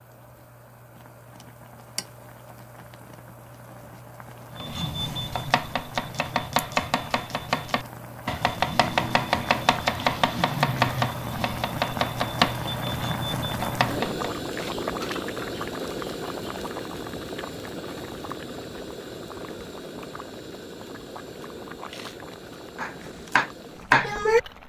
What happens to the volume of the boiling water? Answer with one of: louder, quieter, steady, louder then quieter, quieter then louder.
louder then quieter.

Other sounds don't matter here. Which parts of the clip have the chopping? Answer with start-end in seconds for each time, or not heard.
4.5-14.3, 22.8-24.4.